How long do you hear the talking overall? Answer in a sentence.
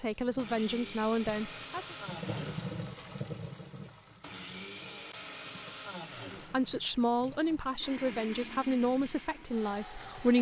The talking can be heard for 6 seconds in total.